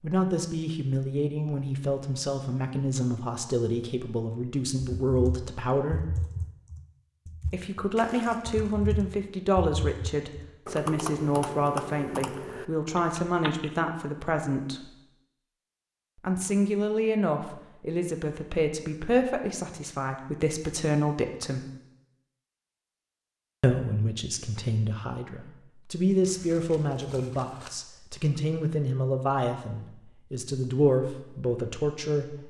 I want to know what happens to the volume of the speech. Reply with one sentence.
The volume of the speech stays about the same.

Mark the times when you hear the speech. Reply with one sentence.
You can hear the speech from 0.0 to 6.0 s, from 7.5 to 14.9 s, from 16.2 to 21.6 s and from 23.6 to 32.4 s.